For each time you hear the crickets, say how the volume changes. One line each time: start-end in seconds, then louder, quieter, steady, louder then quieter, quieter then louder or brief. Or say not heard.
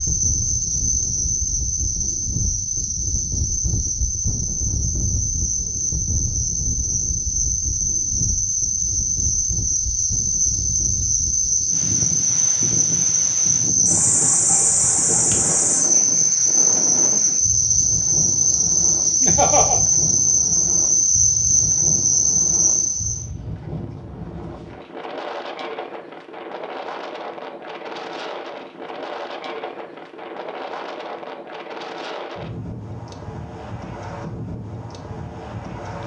0.0-23.2 louder.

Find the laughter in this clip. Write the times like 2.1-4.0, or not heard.
19.2-19.8.